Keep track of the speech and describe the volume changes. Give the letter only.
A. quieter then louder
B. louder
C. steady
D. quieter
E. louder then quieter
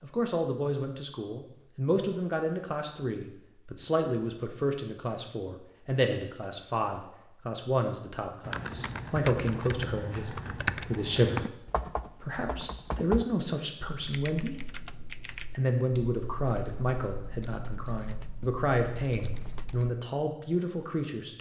C.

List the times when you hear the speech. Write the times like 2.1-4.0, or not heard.
0.0-14.8, 15.6-21.3.